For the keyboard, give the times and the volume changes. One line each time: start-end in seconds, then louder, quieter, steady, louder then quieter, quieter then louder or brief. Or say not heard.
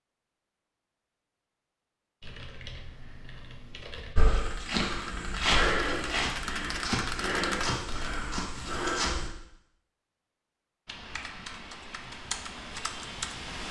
2.2-8.2 louder
10.8-13.6 brief.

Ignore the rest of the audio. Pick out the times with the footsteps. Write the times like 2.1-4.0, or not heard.
4.2-9.3.